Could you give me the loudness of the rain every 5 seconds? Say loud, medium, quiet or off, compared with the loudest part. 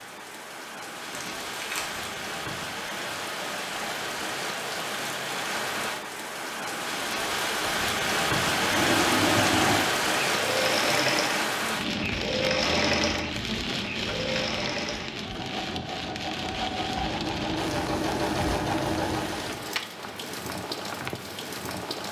medium, loud, loud, medium, medium.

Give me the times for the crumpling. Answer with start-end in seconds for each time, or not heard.
1.1-2.0.